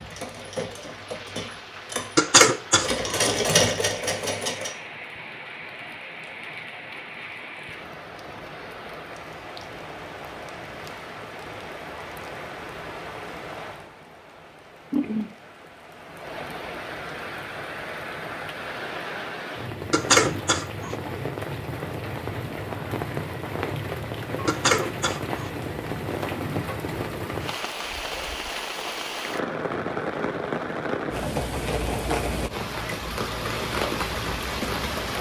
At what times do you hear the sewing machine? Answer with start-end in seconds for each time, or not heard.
0.0-4.8.